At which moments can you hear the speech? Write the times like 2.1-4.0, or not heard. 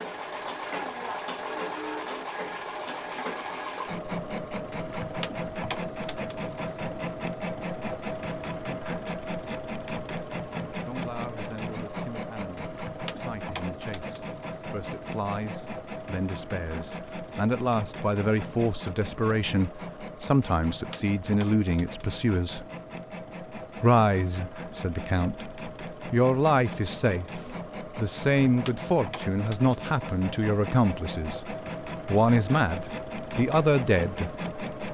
10.8-22.6, 23.8-31.4, 32.0-34.4.